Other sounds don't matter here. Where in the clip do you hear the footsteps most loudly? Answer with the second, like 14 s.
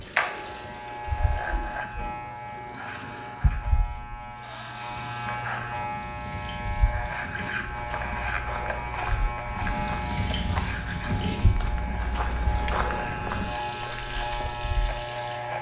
13 s.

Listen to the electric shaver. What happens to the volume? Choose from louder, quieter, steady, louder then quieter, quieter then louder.
steady.